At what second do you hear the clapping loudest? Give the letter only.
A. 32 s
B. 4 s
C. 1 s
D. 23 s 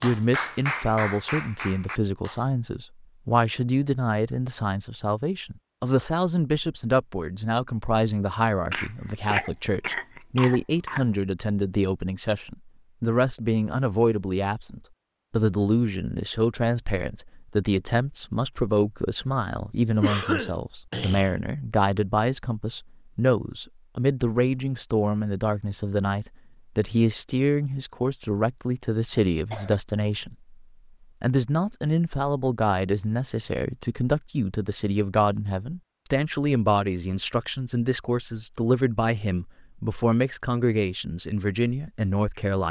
C.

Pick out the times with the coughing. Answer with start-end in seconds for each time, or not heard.
8.7-11.1, 20.0-21.4, 29.1-29.8.